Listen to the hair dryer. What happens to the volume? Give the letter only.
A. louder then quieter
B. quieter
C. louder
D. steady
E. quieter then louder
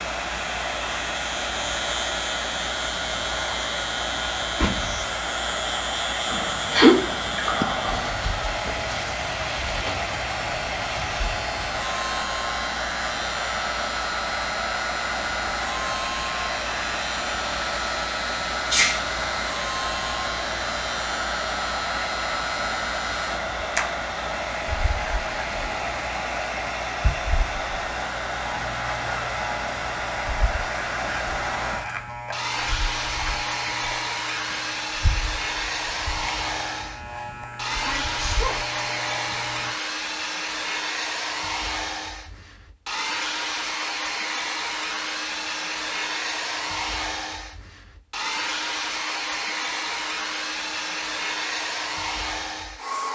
D.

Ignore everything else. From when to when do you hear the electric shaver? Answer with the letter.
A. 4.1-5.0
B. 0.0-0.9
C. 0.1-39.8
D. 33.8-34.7
C.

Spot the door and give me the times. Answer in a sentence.
You can hear the door from 4.1 to 5.0 s.